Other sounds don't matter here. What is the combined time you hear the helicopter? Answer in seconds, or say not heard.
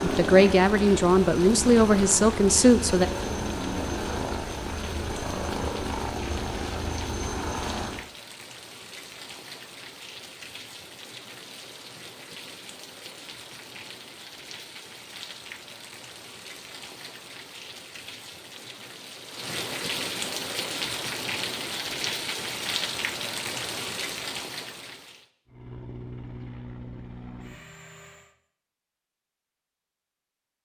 11 s.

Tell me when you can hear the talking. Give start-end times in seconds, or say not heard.
0.0-3.0.